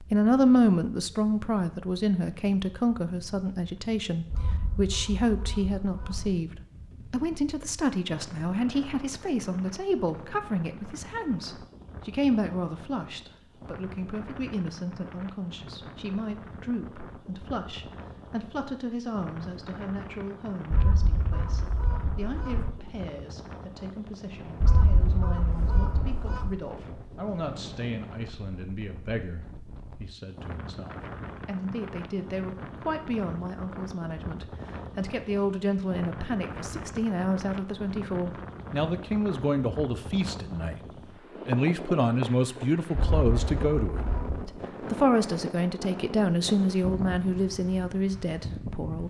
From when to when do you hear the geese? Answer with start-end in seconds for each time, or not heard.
4.3-6.3, 20.7-22.7, 24.6-26.5, 43.0-44.5.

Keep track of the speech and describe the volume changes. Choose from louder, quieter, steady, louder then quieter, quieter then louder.
quieter then louder.